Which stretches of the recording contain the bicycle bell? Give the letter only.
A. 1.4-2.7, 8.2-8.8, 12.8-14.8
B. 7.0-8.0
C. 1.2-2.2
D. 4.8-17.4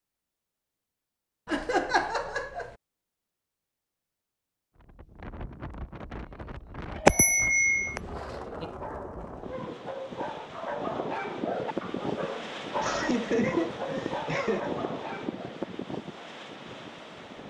B.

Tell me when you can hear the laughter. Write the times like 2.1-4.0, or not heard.
1.4-2.7, 8.2-8.8, 12.8-14.8.